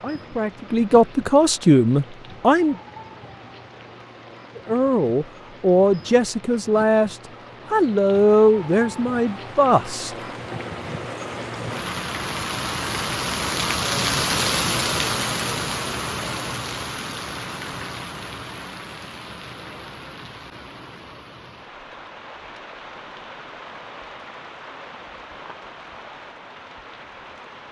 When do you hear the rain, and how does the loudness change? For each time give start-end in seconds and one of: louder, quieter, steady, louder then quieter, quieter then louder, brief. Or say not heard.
0.0-27.6 louder then quieter.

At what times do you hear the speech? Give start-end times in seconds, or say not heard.
0.0-2.8, 4.5-10.2.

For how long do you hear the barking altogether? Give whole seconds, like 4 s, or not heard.
not heard.